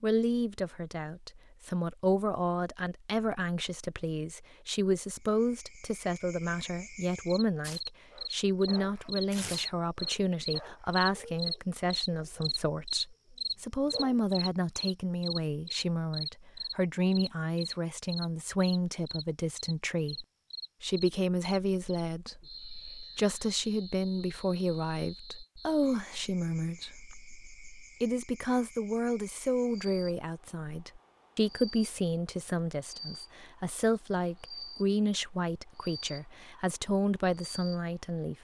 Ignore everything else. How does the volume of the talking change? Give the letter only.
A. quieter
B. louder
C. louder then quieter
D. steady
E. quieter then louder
D.